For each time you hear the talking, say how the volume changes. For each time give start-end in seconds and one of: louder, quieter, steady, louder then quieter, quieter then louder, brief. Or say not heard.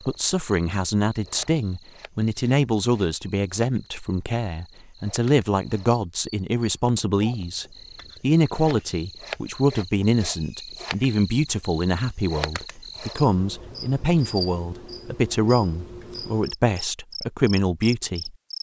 0.1-18.3 steady.